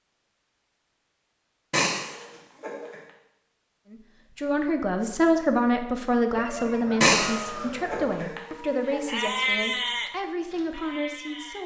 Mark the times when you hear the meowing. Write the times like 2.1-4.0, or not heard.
1.7-3.0, 7.0-9.1.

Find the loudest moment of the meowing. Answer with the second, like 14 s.
7 s.